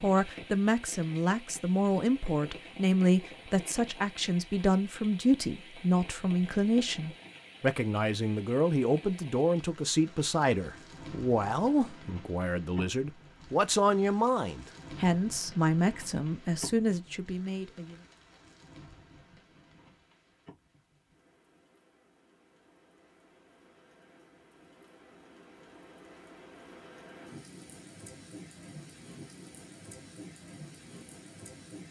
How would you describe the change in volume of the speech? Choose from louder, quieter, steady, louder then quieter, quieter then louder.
steady.